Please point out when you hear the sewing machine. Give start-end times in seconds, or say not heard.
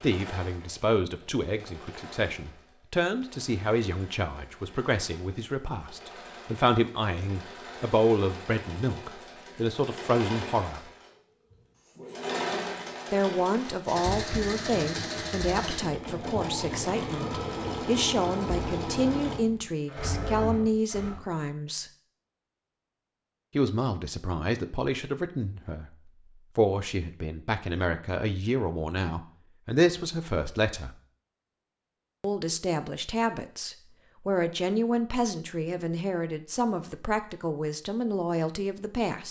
0.0-21.2.